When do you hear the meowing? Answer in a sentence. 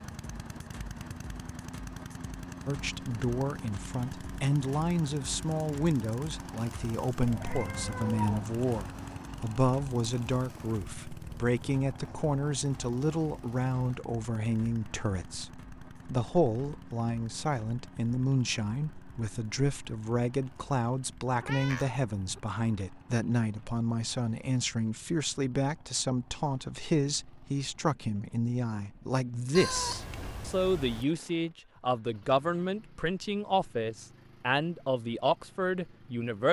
The meowing can be heard from 7.2 to 9.2 s, from 21.4 to 22.4 s and from 29.6 to 31.1 s.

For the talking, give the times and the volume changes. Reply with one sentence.
You can hear the talking from 2.6 to 36.4 s, at a steady volume.